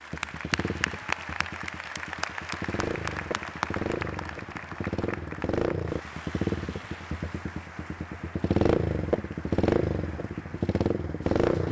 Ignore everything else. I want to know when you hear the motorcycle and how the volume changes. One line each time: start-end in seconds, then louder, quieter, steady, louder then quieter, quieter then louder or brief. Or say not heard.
0.0-11.6 louder.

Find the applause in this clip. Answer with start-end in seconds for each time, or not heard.
0.0-11.6.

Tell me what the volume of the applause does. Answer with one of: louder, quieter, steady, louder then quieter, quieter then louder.
quieter.